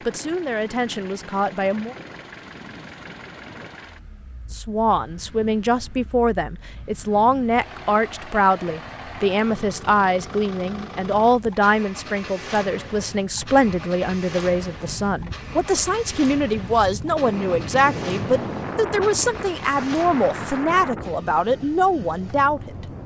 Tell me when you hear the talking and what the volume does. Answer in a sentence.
You can hear the talking briefly from 0.1 to 1.9 s; and from 4.5 to 22.9 s, at a steady volume.